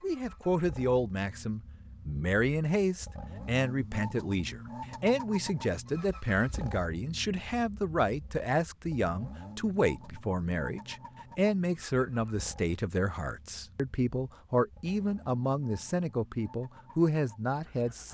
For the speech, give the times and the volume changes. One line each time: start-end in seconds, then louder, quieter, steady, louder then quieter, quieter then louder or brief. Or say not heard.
0.0-18.1 steady.